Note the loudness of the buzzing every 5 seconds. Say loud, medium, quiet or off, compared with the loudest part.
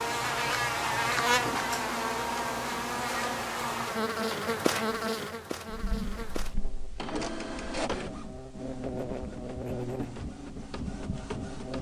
loud, medium, quiet.